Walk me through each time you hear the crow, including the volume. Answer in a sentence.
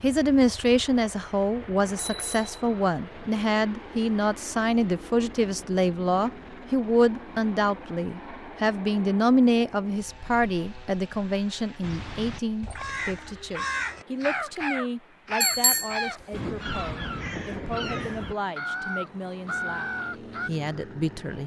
You can hear the crow from 11.8 to 20.5 s, at a steady volume.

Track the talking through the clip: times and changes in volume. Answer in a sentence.
You can hear the talking from 0.0 to 21.4 s, getting quieter.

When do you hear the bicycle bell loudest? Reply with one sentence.
The volume of the bicycle bell peaks at 16 seconds.